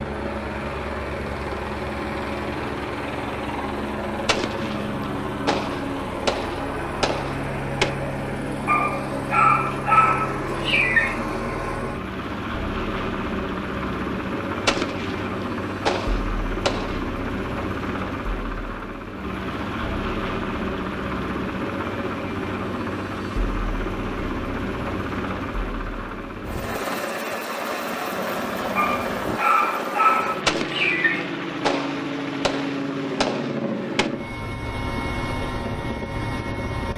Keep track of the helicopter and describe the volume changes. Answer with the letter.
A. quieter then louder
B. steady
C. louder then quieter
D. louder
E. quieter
B.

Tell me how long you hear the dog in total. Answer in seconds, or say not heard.
5 s.